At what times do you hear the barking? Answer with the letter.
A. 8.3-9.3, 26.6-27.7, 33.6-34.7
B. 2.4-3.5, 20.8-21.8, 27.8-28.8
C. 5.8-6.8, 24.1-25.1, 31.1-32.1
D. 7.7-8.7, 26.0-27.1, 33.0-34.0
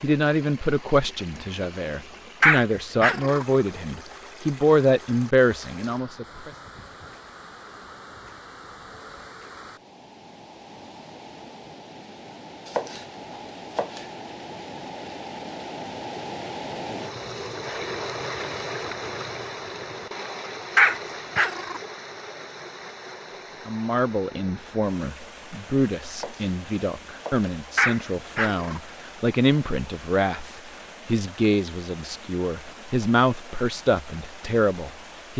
B.